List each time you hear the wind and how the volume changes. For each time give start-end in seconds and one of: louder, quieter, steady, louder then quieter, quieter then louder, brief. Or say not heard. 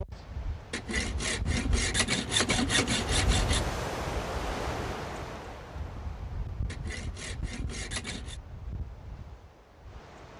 0.0-10.3 louder then quieter.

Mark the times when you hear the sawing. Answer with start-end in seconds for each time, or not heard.
0.7-3.6, 6.7-8.4.